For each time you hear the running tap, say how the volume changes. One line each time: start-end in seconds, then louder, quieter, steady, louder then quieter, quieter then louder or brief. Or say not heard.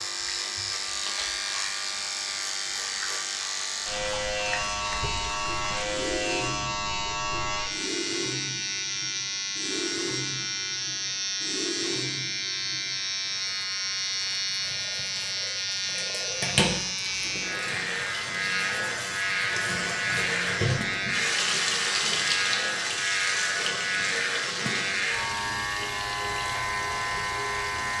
0.0-27.9 louder.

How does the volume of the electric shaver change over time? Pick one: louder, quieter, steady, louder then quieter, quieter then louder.
steady.